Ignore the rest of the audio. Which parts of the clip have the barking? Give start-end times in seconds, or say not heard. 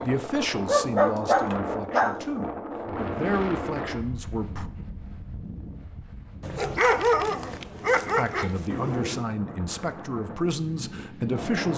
0.7-2.2, 6.4-9.2.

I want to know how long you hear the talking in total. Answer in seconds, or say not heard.
8 s.